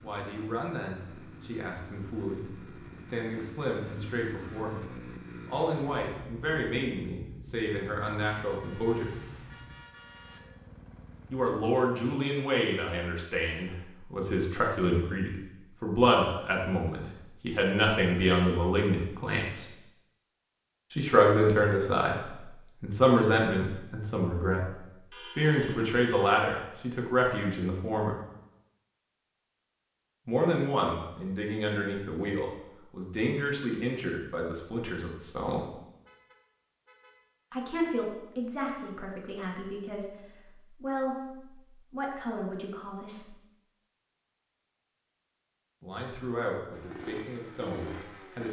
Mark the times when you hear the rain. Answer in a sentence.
You can't hear the rain here.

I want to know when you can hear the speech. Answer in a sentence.
The speech can be heard from 0.0 to 9.1 s, from 11.3 to 19.7 s, from 20.9 to 28.1 s, from 30.2 to 35.6 s, from 37.5 to 43.4 s and from 45.8 to 48.4 s.